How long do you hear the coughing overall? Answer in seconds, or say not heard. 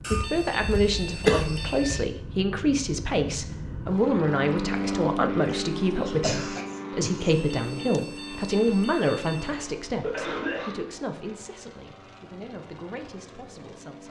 5 s.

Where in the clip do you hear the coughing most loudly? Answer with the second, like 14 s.
1 s.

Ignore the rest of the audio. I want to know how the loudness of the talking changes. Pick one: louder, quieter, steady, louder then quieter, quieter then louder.
quieter.